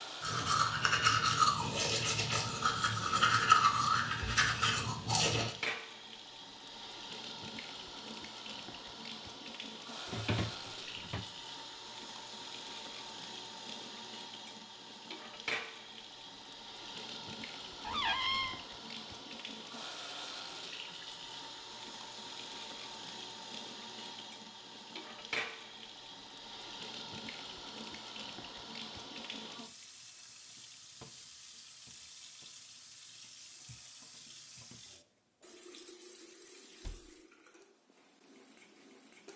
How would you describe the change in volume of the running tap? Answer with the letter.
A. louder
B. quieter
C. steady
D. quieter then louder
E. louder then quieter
B.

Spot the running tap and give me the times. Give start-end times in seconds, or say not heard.
0.0-39.3.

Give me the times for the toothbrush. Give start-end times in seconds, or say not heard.
0.2-5.5.